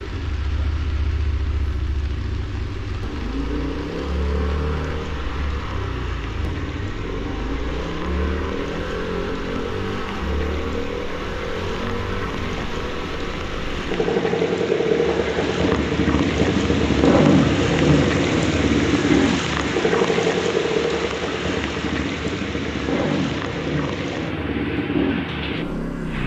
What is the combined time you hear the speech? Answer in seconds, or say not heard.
not heard.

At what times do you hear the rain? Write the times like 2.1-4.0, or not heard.
0.0-26.2.